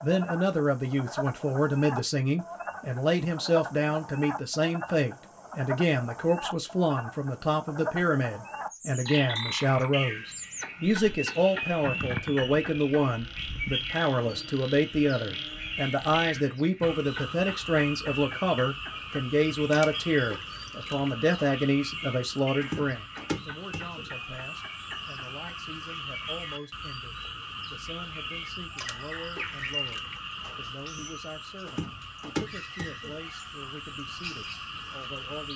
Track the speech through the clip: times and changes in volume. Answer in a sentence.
The speech can be heard from 0.0 to 35.5 s, getting quieter.